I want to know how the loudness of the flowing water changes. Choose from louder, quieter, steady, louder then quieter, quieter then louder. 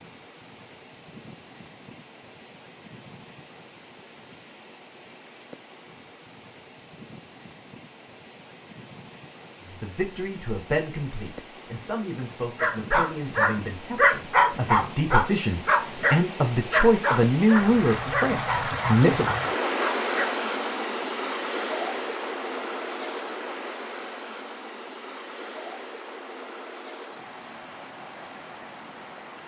louder then quieter.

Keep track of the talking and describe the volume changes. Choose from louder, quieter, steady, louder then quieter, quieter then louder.
louder.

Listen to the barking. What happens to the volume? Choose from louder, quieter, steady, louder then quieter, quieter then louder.
quieter.